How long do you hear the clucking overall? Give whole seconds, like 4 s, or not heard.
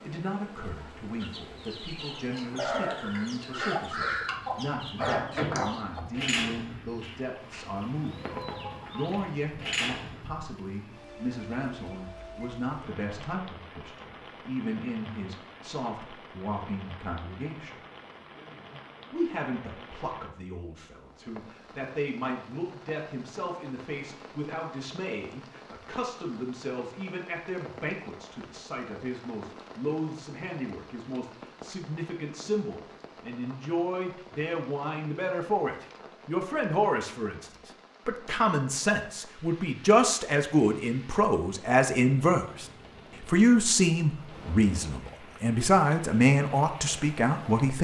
9 s.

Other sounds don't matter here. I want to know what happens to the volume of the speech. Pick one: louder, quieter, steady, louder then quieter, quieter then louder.
louder.